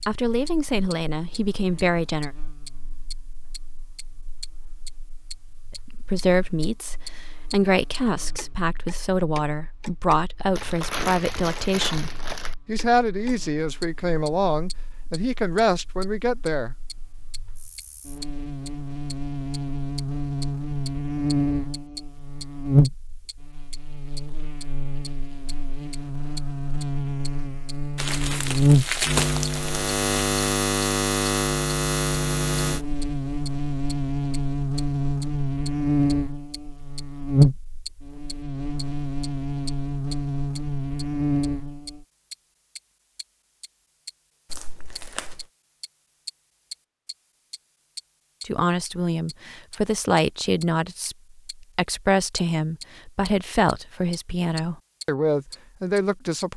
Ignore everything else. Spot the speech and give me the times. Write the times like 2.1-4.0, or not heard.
0.1-2.3, 5.8-16.8, 48.5-56.5.